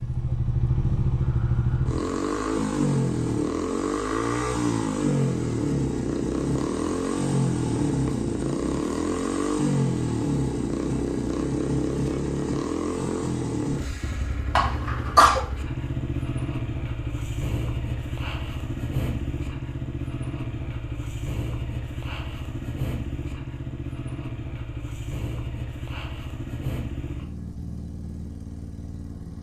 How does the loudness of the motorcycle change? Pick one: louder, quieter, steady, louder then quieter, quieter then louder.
quieter.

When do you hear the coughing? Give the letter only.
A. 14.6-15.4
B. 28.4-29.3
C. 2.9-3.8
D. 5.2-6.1
A.